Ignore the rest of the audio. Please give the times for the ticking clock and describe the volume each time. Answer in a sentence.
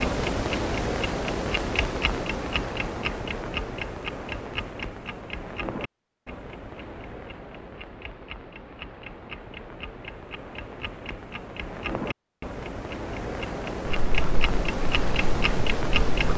The ticking clock can be heard from 0.0 to 16.3 s, getting quieter then louder.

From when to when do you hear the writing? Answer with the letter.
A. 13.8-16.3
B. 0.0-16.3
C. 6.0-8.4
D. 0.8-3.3
A.